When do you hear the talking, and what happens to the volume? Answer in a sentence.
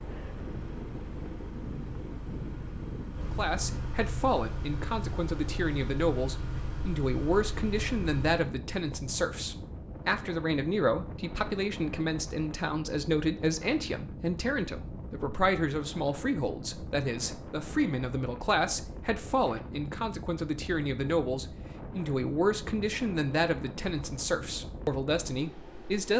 The talking can be heard from 3.2 to 26.1 s, at a steady volume.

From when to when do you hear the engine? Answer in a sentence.
You can hear the engine from 0.0 to 8.4 s.